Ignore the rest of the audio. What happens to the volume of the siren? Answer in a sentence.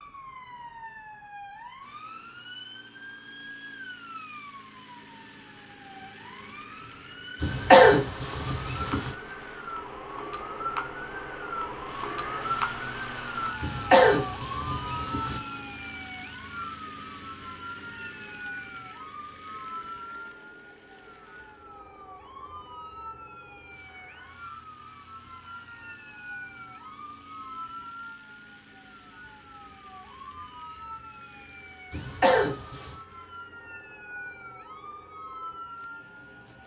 The volume of the siren goes up, then down.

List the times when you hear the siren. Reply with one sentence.
The siren can be heard from 0.0 to 36.6 s.